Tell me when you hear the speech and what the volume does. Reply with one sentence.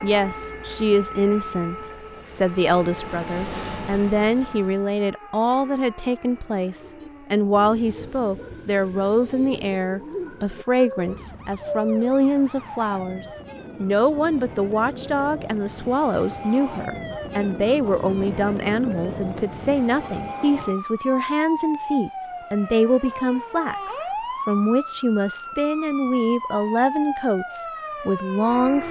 You can hear the speech from 0.0 to 28.8 s, at a steady volume.